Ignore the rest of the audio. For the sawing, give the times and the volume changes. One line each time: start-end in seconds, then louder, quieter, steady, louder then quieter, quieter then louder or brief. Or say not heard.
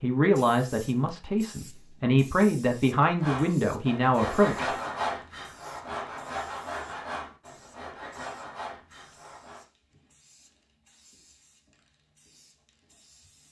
3.2-9.7 quieter.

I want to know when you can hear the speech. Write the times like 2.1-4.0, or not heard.
0.0-4.7.